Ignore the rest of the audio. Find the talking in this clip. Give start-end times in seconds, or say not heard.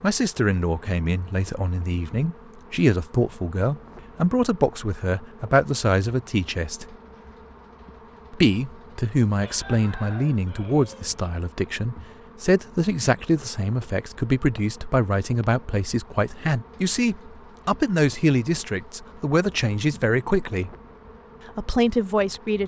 0.0-7.0, 8.3-20.8, 21.6-22.6.